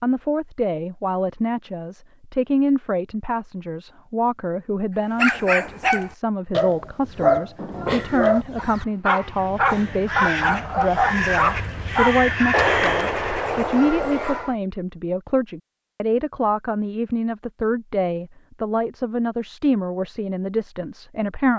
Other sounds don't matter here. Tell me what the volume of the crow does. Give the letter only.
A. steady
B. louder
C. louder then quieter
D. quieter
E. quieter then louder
B.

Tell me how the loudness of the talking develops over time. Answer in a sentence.
The loudness of the talking stays about the same.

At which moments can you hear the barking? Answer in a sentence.
The barking can be heard from 5.2 to 14.6 s.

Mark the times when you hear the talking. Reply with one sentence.
The talking can be heard from 0.0 to 21.5 s.